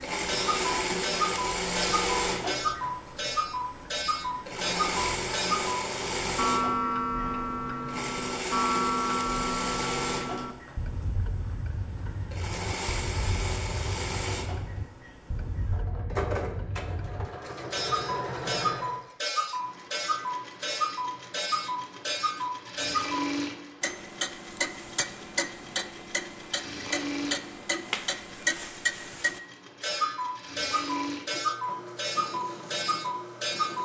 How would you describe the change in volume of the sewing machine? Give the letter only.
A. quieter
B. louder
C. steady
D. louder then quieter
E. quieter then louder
A.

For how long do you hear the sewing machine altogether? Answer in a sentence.
You can hear the sewing machine for 34 seconds altogether.